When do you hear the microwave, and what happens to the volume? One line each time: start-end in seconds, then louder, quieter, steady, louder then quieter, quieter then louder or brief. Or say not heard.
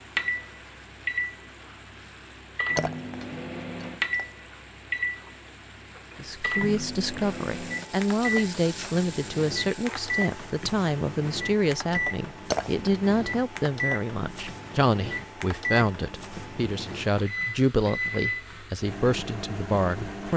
0.0-20.3 steady.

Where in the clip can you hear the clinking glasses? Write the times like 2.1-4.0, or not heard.
2.8-4.2, 12.5-13.0.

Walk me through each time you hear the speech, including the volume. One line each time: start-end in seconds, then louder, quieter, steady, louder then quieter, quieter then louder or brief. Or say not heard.
6.2-20.3 steady.